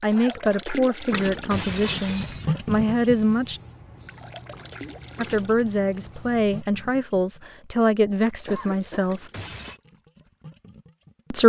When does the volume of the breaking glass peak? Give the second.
2 s.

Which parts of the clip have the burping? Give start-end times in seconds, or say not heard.
not heard.